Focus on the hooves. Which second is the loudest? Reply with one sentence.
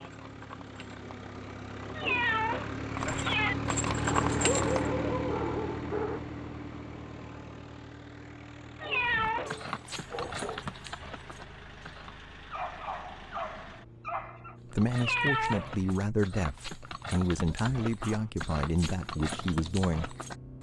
The loudest moment of the hooves is at 4 seconds.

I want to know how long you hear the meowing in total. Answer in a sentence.
The meowing can be heard for 3 seconds in total.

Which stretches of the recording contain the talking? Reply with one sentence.
The talking can be heard from 14.7 to 20.1 s.